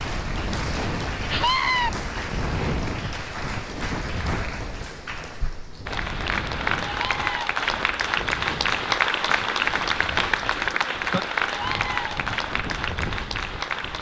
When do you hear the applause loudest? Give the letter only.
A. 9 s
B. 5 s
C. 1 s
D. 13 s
A.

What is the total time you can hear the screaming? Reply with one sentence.
You can hear the screaming for 2 seconds altogether.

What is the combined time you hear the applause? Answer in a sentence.
The applause can be heard for 14 seconds in total.